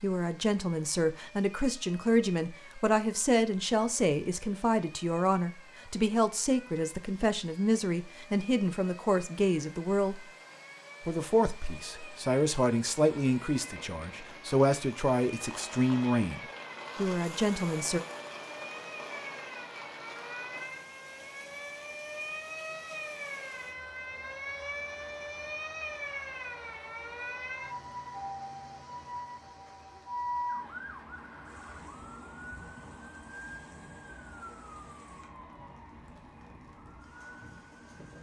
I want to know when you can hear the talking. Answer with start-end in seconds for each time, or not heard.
0.0-10.2, 11.1-18.0.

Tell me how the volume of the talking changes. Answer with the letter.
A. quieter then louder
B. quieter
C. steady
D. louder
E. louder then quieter
C.